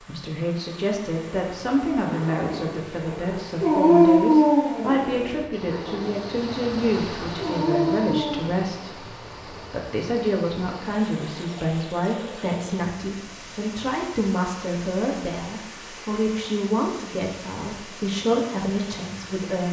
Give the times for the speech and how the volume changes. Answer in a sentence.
You can hear the speech from 0.0 to 19.6 s, at a steady volume.